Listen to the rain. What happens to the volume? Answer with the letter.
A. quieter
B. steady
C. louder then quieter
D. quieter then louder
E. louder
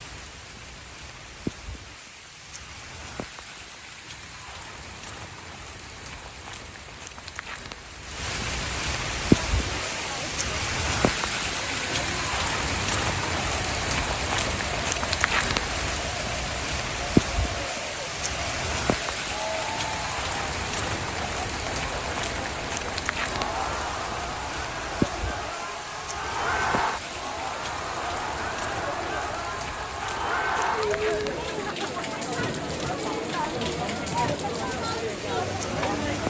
C.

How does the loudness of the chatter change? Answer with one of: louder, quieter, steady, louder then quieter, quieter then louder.
louder.